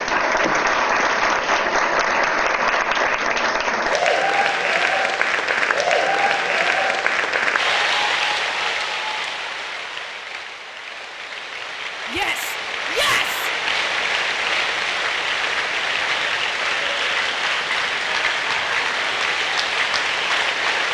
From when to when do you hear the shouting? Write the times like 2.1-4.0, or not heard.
12.1-13.4.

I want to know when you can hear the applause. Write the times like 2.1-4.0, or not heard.
0.0-20.8.